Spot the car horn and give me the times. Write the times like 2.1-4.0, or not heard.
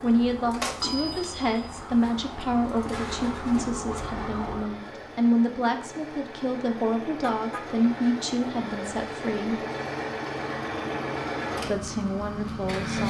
7.2-7.7.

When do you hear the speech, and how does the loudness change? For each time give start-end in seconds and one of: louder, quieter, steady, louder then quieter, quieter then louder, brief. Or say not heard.
0.0-9.6 steady
11.7-13.0 brief.